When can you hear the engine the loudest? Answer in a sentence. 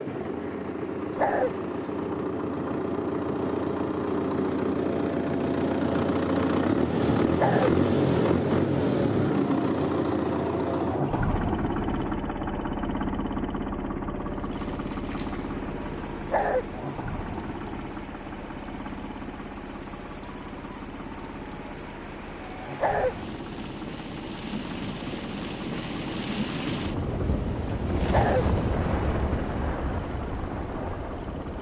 The volume of the engine peaks at 8 seconds.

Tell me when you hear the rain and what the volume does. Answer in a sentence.
The rain can be heard from 14.2 to 31.5 s, getting louder.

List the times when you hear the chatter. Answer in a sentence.
The chatter can't be heard in this clip.